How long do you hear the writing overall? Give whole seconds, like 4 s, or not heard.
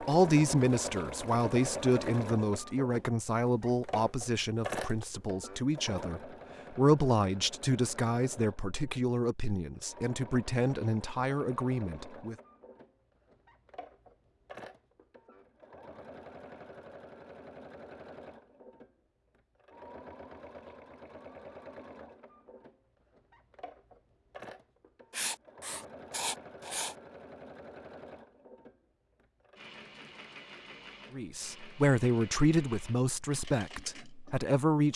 2 s.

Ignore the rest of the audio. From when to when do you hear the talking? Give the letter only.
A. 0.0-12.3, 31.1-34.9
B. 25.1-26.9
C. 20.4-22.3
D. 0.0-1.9
A.